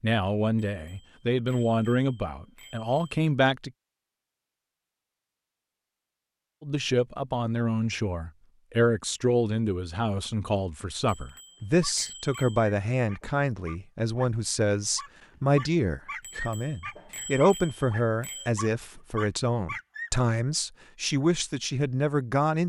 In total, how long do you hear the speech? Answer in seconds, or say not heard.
20 s.